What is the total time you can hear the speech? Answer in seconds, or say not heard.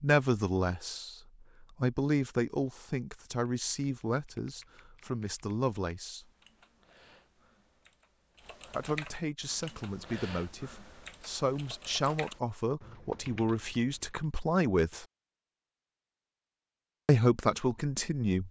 13 s.